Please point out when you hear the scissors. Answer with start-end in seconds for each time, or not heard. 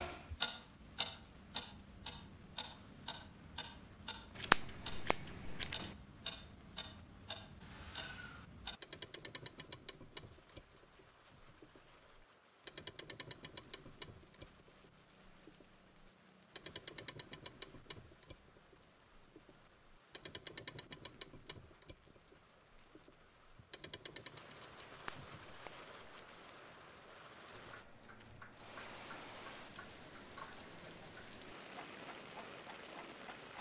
4.3-5.9, 24.9-26.4.